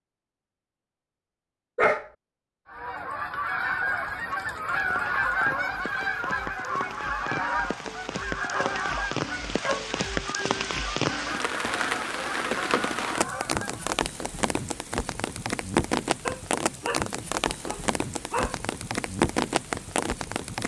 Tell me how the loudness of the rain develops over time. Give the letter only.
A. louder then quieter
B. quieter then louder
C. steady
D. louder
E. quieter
D.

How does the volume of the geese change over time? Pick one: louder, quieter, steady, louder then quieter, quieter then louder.
quieter.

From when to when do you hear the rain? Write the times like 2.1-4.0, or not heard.
4.7-20.6.